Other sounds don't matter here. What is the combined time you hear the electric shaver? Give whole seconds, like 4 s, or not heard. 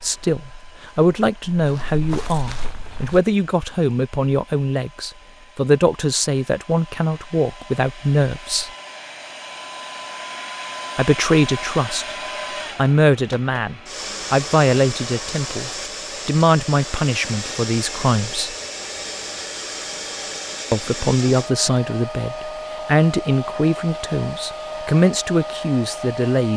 not heard.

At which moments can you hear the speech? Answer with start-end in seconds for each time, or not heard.
0.0-8.7, 10.9-12.2, 12.8-18.6, 20.7-26.5.